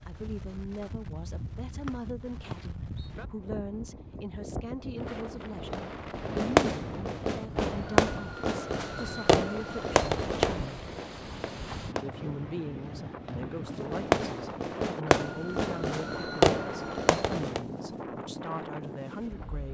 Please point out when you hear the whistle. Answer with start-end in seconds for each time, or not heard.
1.9-3.1.